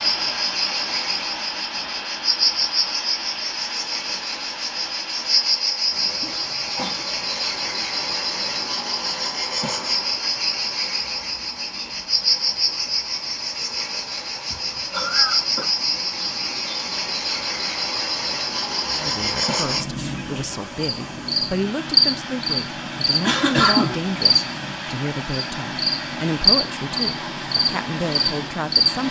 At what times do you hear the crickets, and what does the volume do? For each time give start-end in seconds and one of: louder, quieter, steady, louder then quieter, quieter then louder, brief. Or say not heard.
0.0-29.0 steady.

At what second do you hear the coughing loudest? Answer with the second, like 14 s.
24 s.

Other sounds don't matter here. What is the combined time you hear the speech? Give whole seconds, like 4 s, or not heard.
10 s.